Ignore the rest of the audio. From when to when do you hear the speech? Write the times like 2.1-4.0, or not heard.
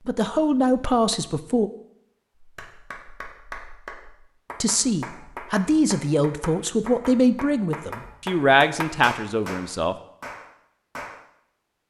0.1-1.7, 4.6-9.9.